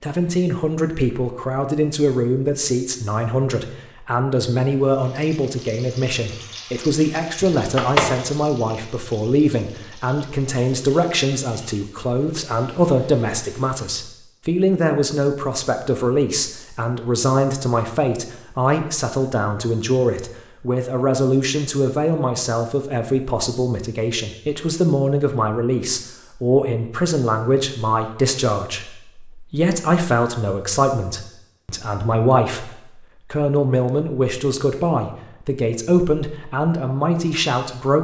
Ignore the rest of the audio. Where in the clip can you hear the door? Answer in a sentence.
The door can be heard from 7.4 to 8.1 s.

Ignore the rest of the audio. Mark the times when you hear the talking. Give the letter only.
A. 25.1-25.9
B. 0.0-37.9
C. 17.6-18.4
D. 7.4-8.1
B.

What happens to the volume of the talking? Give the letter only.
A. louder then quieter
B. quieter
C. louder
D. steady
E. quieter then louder
D.